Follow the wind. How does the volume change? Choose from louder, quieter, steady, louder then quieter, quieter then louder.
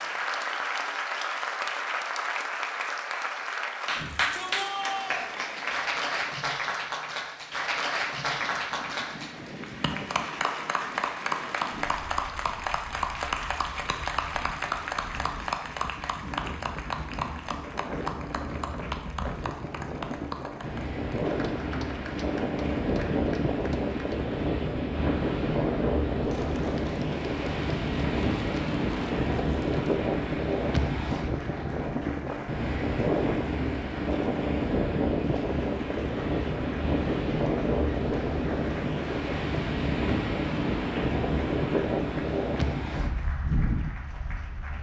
louder.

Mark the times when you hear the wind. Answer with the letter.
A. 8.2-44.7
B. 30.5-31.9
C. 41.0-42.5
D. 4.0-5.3
A.